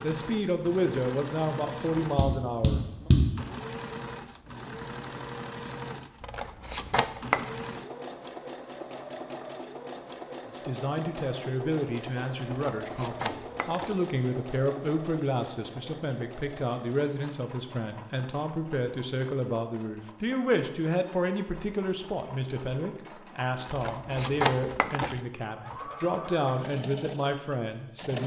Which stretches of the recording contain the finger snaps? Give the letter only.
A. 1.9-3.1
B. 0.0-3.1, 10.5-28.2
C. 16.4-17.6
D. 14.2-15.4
A.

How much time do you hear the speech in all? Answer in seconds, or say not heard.
21 s.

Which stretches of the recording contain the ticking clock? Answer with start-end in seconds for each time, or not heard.
not heard.